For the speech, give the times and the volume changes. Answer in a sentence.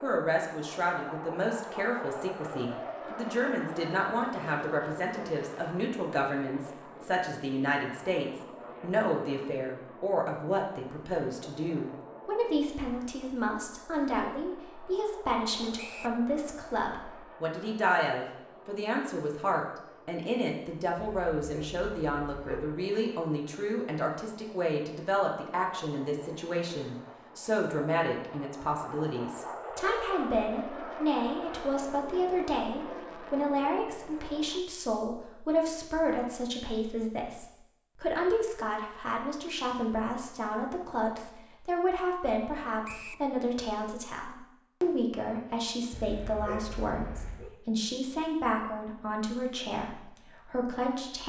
The speech can be heard from 0.0 to 51.2 s, at a steady volume.